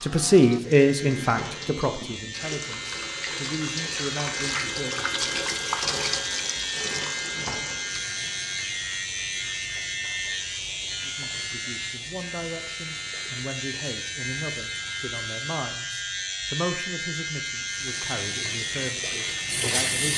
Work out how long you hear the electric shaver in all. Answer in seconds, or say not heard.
20 s.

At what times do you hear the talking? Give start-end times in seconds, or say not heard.
0.0-5.0, 11.1-20.1.